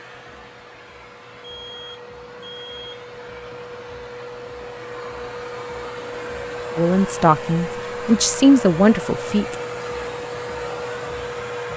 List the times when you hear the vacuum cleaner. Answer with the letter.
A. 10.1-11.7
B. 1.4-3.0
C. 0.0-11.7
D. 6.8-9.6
C.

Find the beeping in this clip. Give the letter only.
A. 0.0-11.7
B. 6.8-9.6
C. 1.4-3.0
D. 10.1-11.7
C.